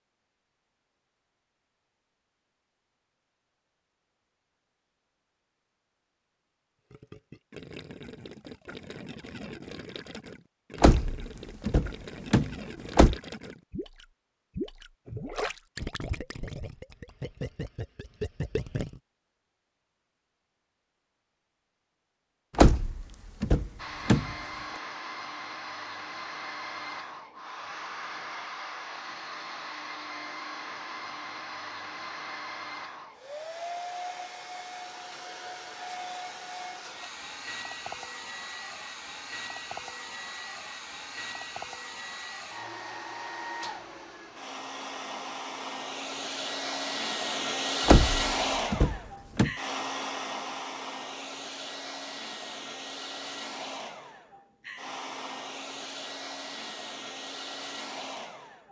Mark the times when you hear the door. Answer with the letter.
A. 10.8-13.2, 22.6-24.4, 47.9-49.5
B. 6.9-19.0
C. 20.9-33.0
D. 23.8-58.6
A.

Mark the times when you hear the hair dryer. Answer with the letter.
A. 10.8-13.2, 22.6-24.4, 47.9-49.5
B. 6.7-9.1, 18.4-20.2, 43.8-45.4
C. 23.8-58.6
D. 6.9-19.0
C.